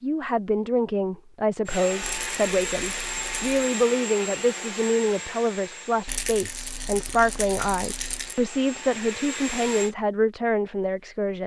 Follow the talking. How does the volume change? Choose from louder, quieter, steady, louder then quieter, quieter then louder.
steady.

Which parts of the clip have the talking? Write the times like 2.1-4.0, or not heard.
0.0-11.4.